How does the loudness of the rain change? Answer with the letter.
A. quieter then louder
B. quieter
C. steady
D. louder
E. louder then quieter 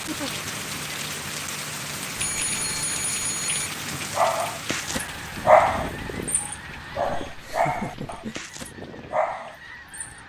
B.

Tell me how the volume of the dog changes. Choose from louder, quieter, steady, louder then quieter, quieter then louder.
louder then quieter.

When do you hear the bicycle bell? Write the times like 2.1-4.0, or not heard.
2.1-3.6.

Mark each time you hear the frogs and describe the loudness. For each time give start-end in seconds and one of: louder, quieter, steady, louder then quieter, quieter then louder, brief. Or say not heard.
not heard.